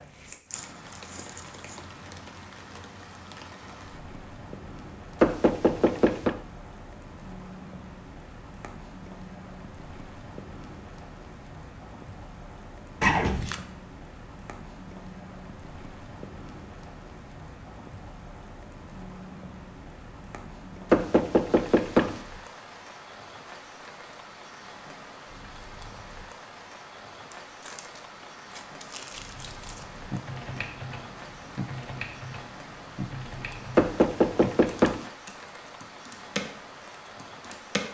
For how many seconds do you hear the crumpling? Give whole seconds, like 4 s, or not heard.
5 s.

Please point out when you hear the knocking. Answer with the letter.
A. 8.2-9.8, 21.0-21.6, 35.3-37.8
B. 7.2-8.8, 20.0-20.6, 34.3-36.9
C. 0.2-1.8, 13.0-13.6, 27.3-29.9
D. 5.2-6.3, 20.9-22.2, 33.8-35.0
D.